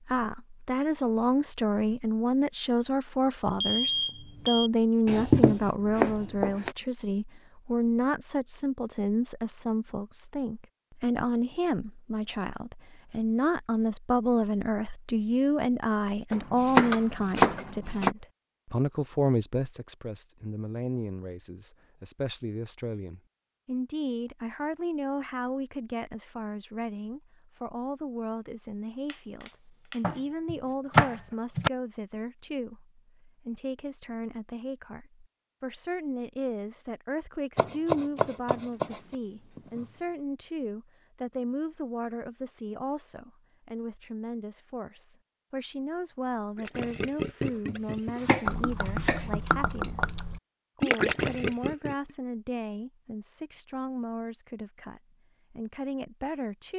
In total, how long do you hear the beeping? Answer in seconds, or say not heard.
2 s.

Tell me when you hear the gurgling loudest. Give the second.
51 s.